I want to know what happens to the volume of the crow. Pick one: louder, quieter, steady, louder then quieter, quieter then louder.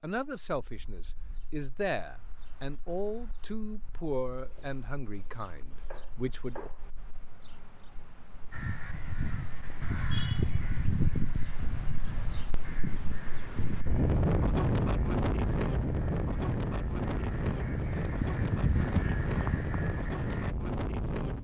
quieter then louder.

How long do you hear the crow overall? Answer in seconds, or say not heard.
12 s.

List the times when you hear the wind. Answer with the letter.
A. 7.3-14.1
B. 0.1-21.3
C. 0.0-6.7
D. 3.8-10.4
B.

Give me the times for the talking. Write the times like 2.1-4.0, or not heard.
0.0-6.7.